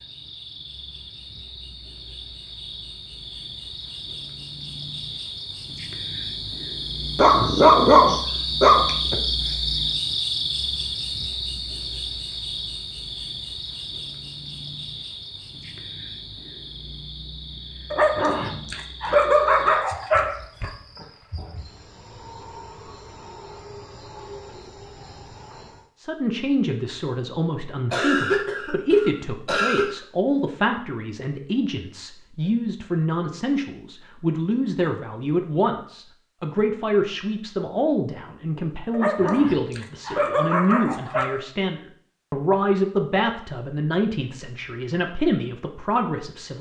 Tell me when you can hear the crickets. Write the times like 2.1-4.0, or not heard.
0.0-25.9.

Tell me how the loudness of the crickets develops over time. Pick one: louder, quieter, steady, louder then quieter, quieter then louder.
louder then quieter.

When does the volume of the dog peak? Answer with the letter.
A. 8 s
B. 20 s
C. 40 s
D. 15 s
A.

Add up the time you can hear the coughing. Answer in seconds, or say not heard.
2 s.